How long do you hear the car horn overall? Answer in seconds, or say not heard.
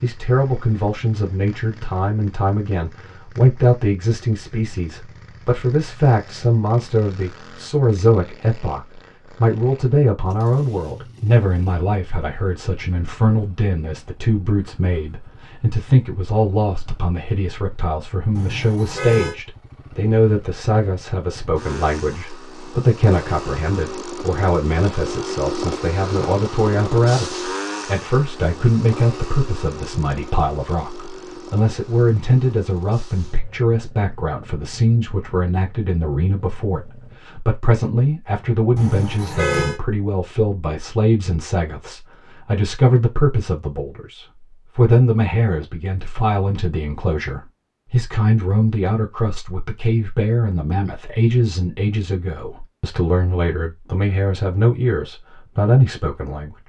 2 s.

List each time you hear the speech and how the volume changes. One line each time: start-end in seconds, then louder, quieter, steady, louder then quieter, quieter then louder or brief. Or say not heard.
0.0-56.5 steady.